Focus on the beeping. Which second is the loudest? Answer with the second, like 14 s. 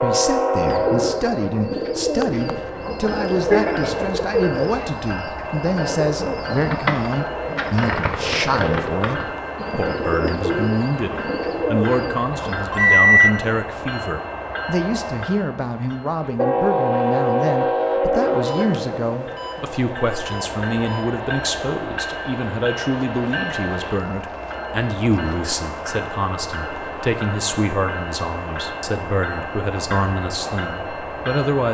13 s.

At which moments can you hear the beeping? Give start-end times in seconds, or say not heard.
12.7-13.4, 18.4-21.1.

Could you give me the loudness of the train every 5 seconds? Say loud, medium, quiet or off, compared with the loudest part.
loud, medium, medium, loud, medium, medium, medium.